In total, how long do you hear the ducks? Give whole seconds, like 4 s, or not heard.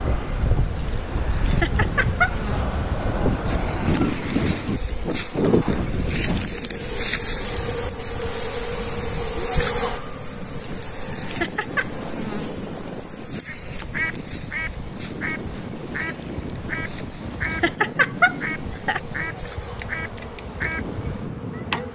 8 s.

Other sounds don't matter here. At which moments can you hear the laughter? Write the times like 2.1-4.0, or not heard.
1.4-2.4, 11.2-11.9, 17.5-19.0.